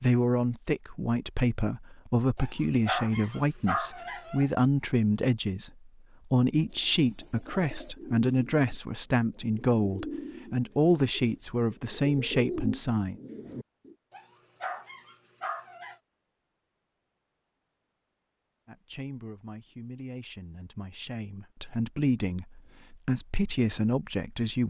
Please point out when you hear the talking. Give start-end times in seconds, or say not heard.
0.0-13.2, 18.6-24.6.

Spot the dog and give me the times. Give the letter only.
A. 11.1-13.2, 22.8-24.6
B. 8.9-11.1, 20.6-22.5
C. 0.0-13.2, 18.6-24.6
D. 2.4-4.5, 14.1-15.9
D.